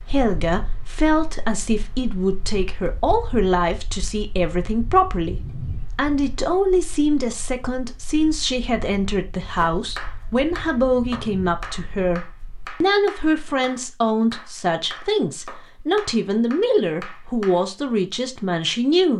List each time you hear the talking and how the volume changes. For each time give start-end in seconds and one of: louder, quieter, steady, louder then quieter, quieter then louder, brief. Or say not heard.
0.0-19.1 steady.